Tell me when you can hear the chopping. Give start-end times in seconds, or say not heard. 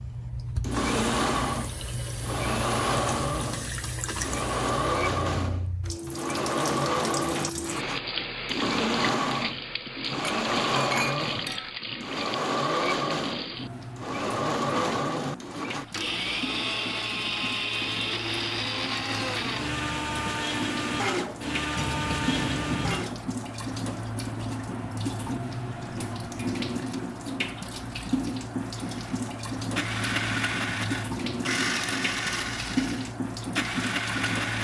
not heard.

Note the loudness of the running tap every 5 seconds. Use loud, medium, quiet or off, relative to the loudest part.
loud, loud, loud, medium, loud, loud, loud.